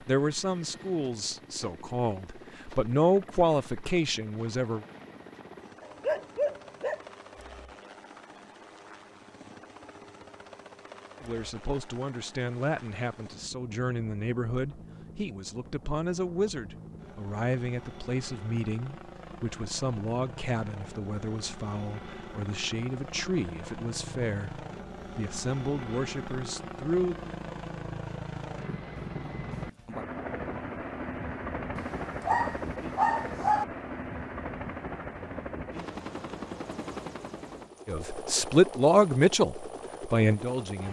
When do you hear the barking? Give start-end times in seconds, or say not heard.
5.8-7.0, 31.8-33.6.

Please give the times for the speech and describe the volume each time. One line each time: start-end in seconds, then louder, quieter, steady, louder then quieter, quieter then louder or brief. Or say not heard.
0.1-4.8 louder then quieter
11.2-27.2 steady
37.9-40.8 brief.